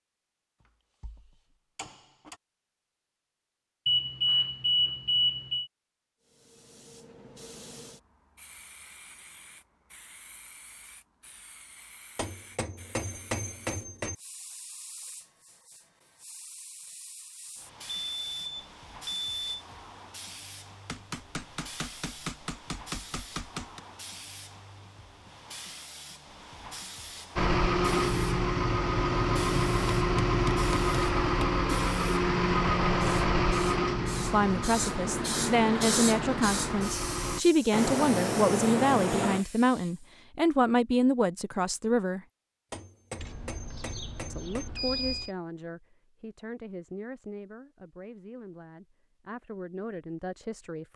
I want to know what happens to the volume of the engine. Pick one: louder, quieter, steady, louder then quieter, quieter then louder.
quieter.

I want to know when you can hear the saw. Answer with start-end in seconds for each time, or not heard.
not heard.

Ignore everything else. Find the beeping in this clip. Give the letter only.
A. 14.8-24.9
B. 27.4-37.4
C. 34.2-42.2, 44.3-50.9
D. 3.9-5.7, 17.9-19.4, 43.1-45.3
D.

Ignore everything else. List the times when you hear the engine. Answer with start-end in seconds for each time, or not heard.
27.4-37.4.